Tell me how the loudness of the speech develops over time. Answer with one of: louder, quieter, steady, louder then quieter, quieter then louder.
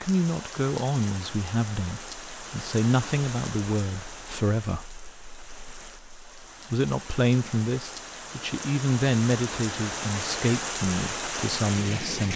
steady.